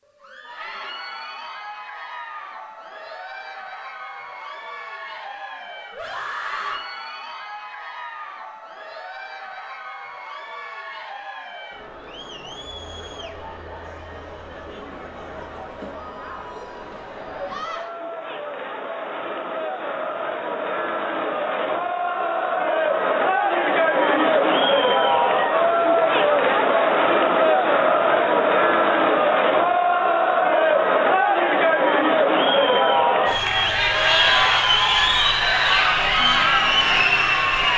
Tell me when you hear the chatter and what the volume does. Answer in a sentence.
You can hear the chatter from 0.1 to 37.7 s, getting louder.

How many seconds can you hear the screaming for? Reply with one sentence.
You can hear the screaming for 2 seconds altogether.